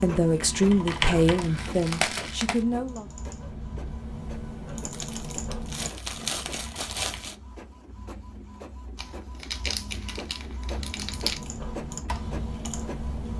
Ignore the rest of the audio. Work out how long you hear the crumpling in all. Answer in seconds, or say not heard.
7 s.